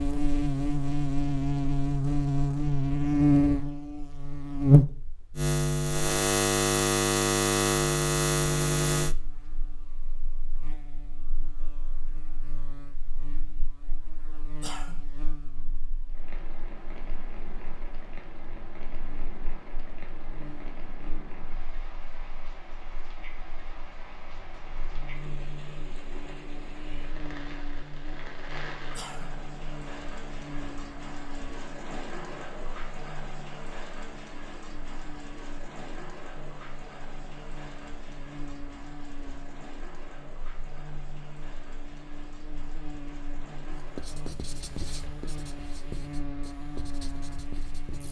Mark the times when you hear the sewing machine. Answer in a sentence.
You can't hear the sewing machine here.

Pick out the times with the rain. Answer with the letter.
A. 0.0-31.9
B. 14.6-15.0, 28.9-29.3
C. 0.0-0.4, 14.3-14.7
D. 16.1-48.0
D.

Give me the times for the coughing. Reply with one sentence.
The coughing can be heard from 14.6 to 15.0 s and from 28.9 to 29.3 s.